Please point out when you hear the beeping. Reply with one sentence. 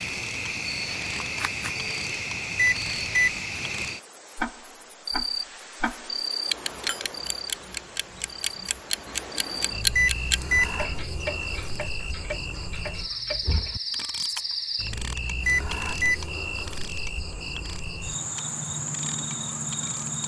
The beeping can be heard from 2.5 to 3.4 s, from 9.9 to 10.8 s and from 15.4 to 16.2 s.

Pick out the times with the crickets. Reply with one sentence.
The crickets can be heard from 0.0 to 20.2 s.